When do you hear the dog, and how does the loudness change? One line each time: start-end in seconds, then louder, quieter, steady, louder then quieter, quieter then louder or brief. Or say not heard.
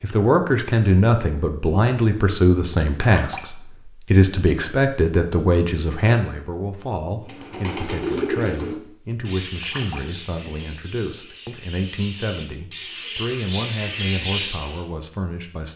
not heard.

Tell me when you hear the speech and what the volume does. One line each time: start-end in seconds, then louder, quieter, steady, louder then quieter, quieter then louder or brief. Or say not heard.
0.0-15.7 quieter.